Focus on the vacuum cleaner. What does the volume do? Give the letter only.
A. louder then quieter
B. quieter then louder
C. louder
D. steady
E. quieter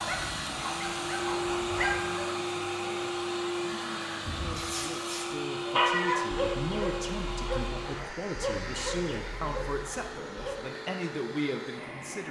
E.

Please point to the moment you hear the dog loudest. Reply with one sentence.
The loudest moment of the dog is at 6 seconds.